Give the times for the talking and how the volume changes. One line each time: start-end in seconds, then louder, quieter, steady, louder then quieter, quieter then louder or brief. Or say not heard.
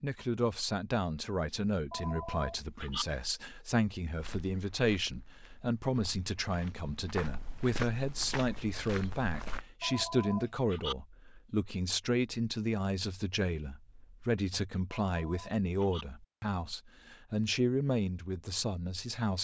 0.0-19.3 steady.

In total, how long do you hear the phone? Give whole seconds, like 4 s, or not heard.
3 s.